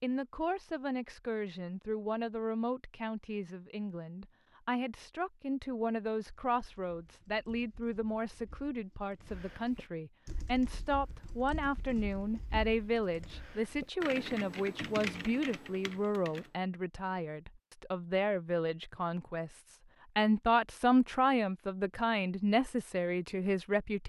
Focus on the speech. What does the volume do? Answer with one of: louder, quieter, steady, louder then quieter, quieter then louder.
louder.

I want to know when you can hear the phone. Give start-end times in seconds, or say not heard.
not heard.